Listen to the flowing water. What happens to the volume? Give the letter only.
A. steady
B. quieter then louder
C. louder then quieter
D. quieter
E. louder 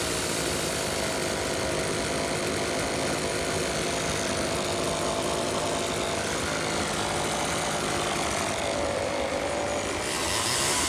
A.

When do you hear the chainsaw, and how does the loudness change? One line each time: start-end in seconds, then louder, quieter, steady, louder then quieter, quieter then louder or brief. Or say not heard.
0.0-10.8 steady.